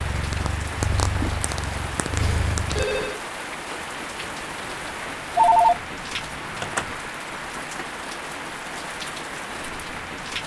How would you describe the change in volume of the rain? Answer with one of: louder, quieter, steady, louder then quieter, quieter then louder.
steady.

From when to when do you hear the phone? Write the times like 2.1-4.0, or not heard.
2.1-3.2, 5.3-6.9.